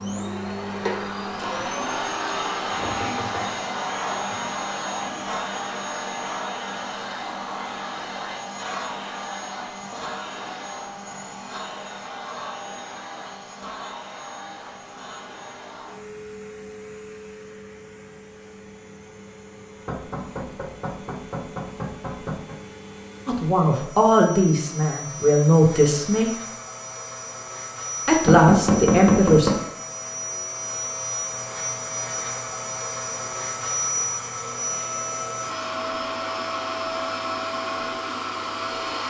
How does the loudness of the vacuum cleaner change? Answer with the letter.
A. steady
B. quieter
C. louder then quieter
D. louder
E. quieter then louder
E.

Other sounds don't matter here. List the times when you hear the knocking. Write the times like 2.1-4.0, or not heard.
2.8-4.4, 19.9-22.6, 28.2-29.6.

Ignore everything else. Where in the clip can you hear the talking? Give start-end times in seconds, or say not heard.
23.2-26.4, 28.1-29.5.